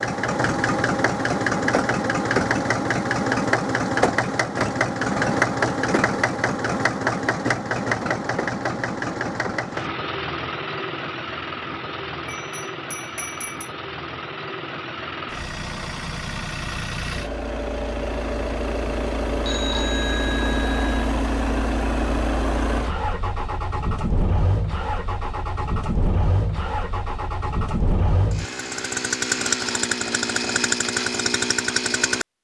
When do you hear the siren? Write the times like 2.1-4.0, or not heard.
not heard.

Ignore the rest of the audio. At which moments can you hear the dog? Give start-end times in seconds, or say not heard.
not heard.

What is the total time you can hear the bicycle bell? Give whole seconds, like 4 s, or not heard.
3 s.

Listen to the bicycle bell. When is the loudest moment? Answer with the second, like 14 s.
20 s.